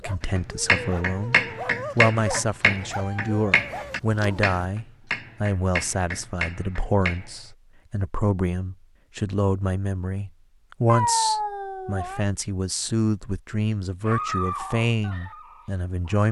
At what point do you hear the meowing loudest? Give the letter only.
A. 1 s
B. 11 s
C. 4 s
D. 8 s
B.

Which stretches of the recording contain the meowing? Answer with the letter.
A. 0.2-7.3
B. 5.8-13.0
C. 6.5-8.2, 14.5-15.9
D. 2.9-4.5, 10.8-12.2
D.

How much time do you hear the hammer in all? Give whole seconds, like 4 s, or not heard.
7 s.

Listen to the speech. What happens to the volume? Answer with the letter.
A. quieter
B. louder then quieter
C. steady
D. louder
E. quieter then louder
C.